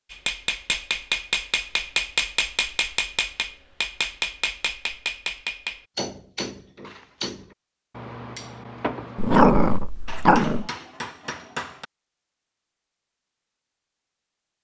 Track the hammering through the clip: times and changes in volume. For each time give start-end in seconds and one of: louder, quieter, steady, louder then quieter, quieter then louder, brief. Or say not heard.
0.1-11.8 quieter.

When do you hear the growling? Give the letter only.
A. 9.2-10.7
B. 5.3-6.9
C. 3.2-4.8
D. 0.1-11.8
A.